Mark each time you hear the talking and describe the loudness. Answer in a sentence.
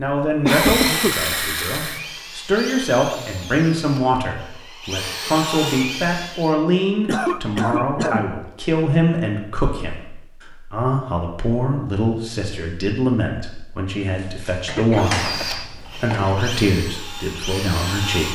You can hear the talking from 0.0 to 18.2 s, at a steady volume.